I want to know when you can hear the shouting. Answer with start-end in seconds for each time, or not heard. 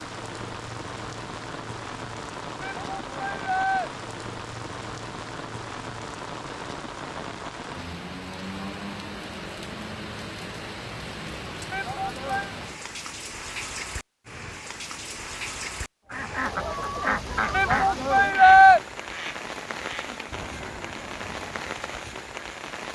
2.6-3.9, 11.7-12.6, 17.5-18.8.